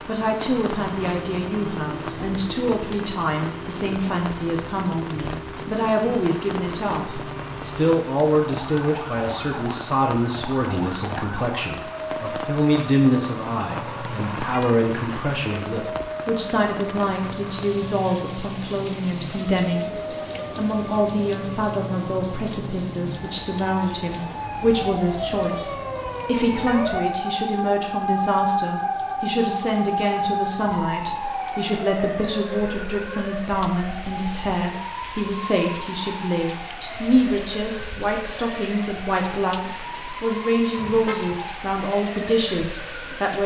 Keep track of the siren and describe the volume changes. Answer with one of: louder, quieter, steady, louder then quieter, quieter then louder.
louder then quieter.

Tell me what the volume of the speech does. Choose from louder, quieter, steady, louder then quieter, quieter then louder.
steady.